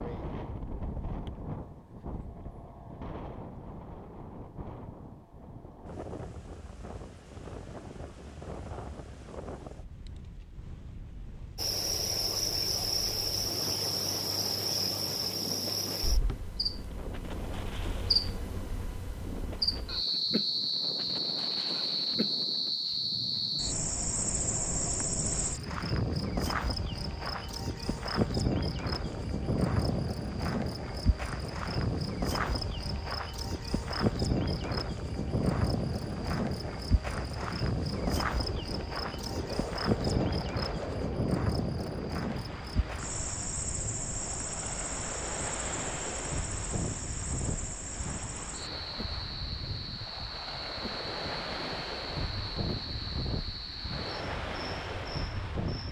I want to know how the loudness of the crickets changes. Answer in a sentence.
The loudness of the crickets goes down.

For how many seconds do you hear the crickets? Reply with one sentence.
You can hear the crickets for 44 seconds altogether.